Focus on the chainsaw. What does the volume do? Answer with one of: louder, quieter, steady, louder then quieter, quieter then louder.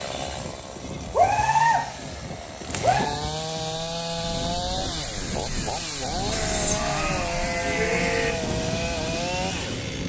louder.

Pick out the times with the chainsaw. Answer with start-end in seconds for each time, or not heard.
0.0-10.0.